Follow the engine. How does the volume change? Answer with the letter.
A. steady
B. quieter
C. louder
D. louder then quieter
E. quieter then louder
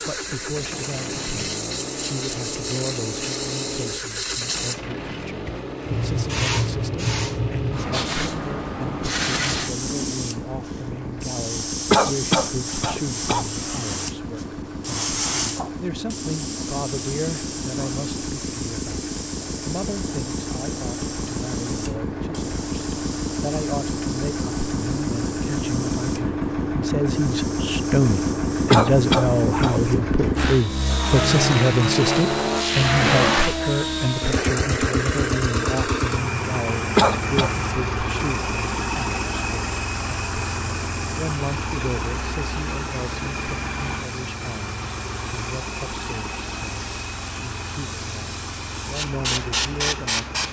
D.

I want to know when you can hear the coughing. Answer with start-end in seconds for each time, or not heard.
11.9-13.5, 28.7-29.8, 37.0-37.5.